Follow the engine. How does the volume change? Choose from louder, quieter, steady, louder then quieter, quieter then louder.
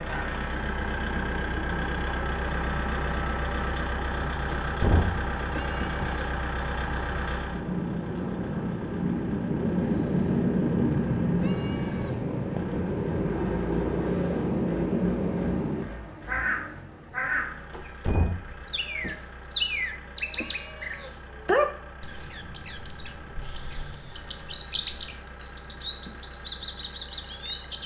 quieter.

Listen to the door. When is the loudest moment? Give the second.
5 s.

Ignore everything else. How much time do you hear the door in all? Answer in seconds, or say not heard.
3 s.